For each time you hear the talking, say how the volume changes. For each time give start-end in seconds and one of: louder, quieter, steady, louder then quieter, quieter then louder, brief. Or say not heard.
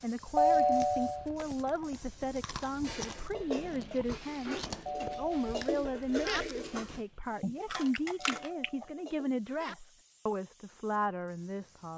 0.0-11.9 steady.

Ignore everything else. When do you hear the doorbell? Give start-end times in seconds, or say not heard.
0.3-1.2, 4.8-6.5, 8.2-9.8.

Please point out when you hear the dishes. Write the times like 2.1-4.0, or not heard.
2.8-9.3.